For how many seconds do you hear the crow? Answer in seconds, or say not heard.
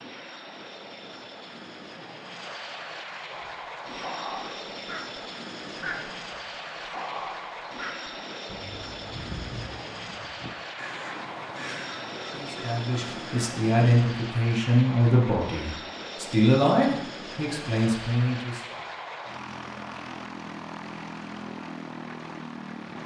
10 s.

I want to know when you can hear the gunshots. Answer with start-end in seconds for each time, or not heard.
not heard.